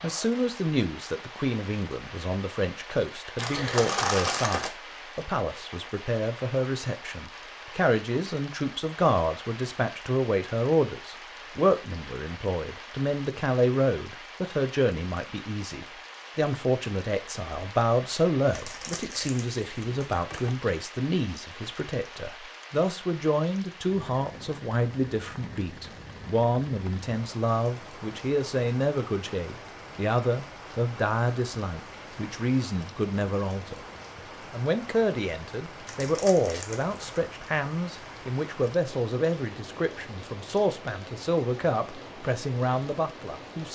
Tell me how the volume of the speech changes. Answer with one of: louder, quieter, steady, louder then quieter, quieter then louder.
steady.